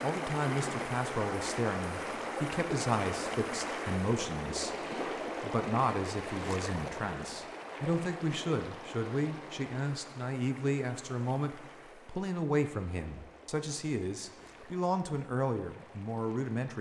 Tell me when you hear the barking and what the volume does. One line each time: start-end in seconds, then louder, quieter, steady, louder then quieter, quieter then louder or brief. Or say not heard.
not heard.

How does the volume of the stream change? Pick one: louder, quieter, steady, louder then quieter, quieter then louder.
quieter.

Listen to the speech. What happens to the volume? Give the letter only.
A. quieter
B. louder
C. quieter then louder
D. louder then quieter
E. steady
E.